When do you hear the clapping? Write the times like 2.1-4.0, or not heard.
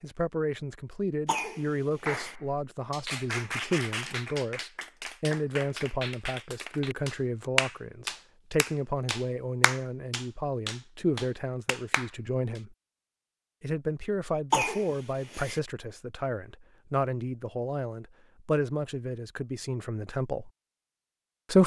2.0-12.6.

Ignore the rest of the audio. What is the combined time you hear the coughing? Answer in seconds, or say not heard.
2 s.